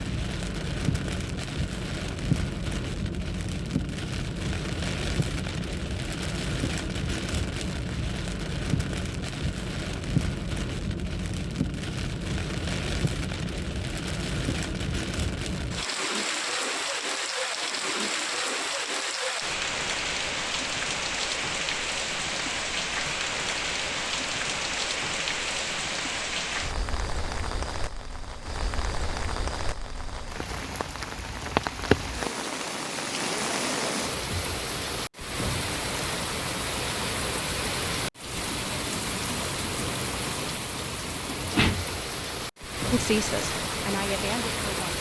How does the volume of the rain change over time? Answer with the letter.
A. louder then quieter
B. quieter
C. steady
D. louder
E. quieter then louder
C.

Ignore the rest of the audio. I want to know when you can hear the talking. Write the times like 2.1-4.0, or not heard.
42.9-44.9.